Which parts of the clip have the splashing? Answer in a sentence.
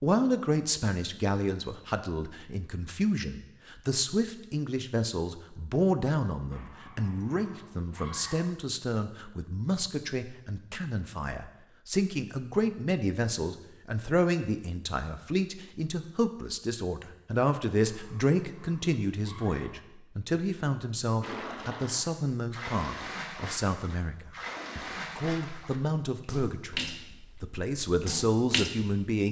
The splashing can be heard from 21.2 to 29.1 s.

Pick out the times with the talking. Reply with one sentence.
You can hear the talking from 0.0 to 29.2 s.